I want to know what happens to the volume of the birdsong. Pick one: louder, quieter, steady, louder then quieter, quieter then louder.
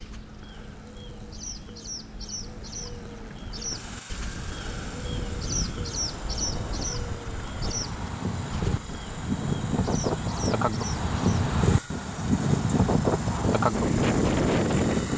louder then quieter.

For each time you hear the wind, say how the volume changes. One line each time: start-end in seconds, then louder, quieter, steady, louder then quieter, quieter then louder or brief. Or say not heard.
4.3-15.1 louder.